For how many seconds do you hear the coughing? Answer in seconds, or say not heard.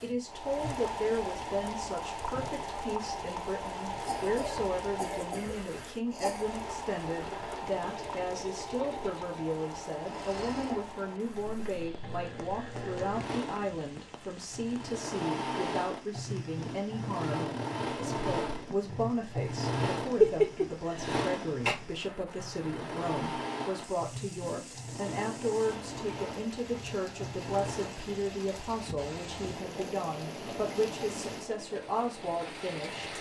4 s.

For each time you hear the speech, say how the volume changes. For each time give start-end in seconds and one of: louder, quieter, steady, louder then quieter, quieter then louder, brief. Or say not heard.
0.0-33.1 steady.